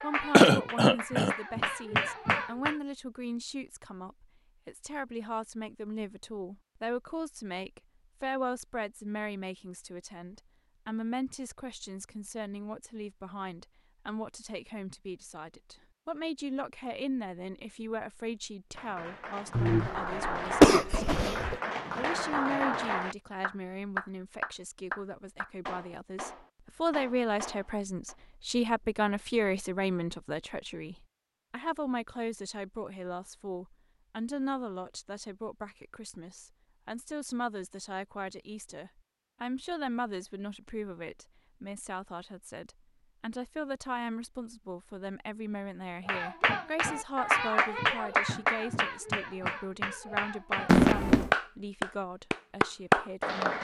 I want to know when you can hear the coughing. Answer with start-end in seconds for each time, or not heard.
0.3-1.4, 19.6-21.6, 50.6-51.3.